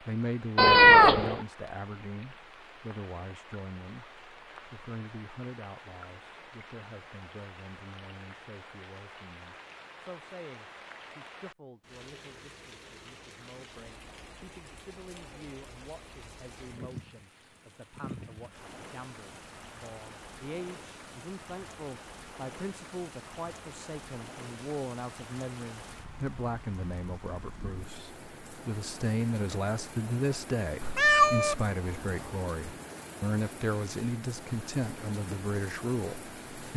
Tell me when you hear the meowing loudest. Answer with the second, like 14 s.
1 s.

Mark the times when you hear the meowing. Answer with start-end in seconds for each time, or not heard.
0.6-1.4, 30.8-32.4.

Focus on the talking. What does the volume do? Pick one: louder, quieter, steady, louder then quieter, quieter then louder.
quieter then louder.